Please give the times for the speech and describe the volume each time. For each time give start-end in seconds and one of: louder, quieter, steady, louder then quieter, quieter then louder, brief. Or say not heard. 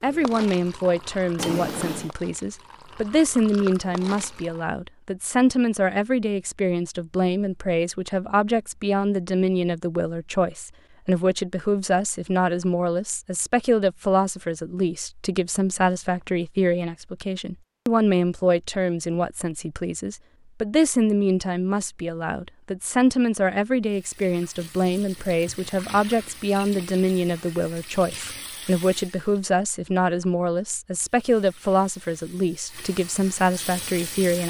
0.0-34.4 steady.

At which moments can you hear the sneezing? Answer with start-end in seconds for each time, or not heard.
not heard.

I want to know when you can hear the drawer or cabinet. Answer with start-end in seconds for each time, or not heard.
1.4-2.1.